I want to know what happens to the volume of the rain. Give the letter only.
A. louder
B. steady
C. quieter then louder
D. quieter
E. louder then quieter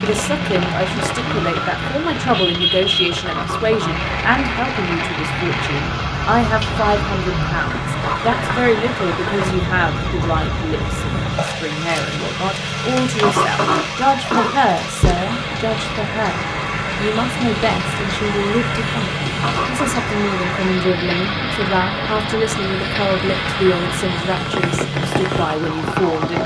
B.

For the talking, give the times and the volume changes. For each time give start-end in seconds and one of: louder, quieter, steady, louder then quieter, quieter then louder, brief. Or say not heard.
0.0-26.4 steady.